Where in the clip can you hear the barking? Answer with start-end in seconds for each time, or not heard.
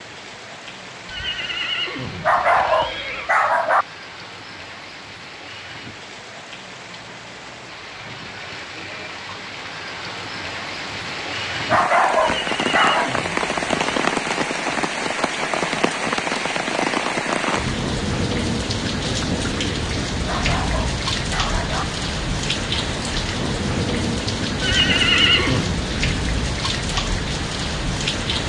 2.2-3.9, 11.7-13.2, 20.2-21.9.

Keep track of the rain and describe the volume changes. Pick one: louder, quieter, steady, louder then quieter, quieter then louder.
louder.